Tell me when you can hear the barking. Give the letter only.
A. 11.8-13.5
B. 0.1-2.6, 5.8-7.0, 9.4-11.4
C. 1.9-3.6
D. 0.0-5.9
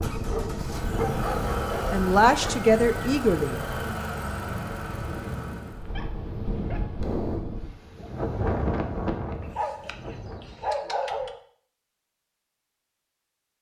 B.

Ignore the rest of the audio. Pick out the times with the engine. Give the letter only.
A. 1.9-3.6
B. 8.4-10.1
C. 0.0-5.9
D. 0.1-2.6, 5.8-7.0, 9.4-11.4
C.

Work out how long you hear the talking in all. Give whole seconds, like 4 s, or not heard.
2 s.